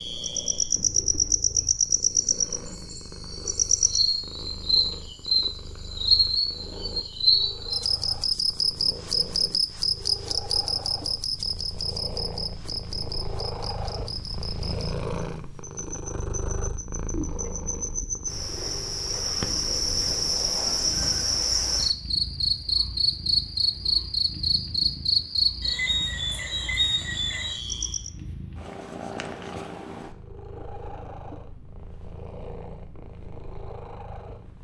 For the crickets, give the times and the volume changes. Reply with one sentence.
The crickets can be heard from 0.0 to 28.1 s, getting quieter then louder.